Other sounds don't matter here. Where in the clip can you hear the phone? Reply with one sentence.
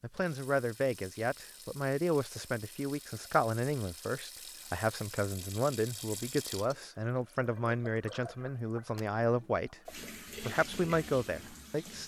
You can't hear the phone here.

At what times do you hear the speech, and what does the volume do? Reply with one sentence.
The speech can be heard from 0.0 to 12.0 s, at a steady volume.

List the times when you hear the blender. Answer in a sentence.
You can't hear the blender here.